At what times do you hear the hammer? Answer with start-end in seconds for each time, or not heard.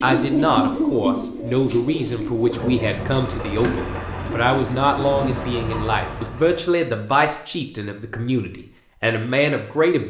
not heard.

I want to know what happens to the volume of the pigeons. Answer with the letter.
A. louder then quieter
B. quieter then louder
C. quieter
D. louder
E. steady
C.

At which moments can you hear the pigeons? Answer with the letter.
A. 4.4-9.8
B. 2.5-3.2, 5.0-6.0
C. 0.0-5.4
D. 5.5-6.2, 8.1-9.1
C.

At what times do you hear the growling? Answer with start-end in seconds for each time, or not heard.
2.5-3.2, 5.0-6.0.